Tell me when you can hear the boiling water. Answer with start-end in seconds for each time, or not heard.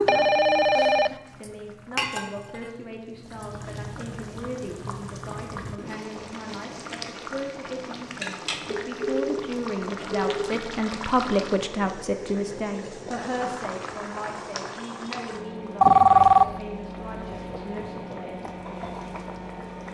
0.0-19.8.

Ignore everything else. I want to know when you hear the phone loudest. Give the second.
16 s.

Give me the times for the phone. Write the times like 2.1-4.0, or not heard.
0.1-1.1, 8.7-10.6, 15.8-16.5.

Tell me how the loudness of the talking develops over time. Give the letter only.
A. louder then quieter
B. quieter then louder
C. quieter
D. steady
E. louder
A.